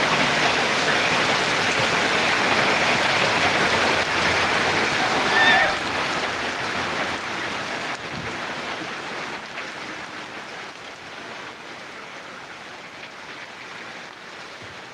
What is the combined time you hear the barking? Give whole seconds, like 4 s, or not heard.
not heard.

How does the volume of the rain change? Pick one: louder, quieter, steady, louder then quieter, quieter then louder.
quieter.